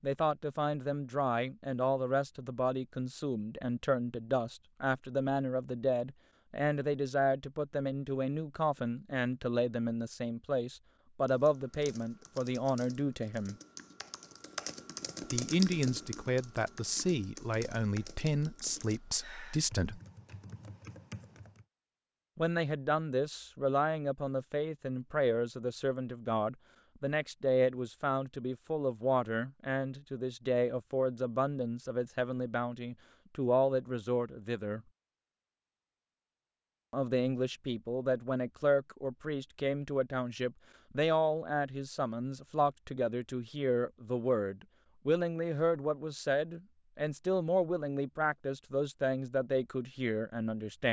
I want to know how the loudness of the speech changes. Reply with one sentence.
The volume of the speech stays about the same.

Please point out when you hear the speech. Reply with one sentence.
The speech can be heard from 0.0 to 13.6 s, from 15.3 to 20.0 s, from 22.4 to 34.8 s and from 36.9 to 50.8 s.